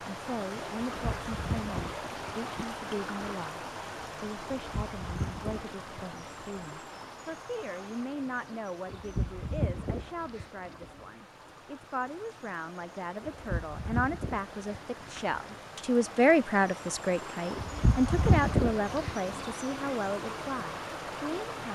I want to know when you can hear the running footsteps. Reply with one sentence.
The running footsteps can't be heard in this clip.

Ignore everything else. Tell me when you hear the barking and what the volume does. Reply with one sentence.
The barking can't be heard in this clip.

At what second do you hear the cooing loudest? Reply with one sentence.
The loudest moment of the cooing is at 18 seconds.